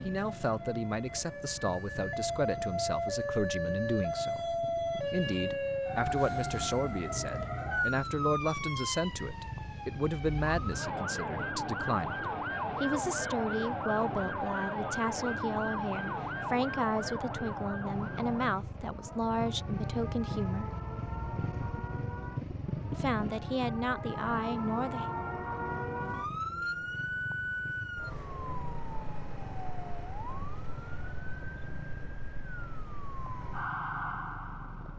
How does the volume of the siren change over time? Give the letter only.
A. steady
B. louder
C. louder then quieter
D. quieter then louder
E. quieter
E.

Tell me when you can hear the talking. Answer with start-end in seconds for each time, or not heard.
0.0-20.7, 22.9-25.1.